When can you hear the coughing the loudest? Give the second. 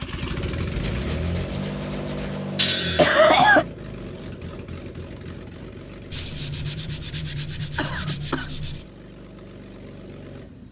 3 s.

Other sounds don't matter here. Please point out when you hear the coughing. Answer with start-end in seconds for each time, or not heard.
2.5-3.6, 7.8-8.6.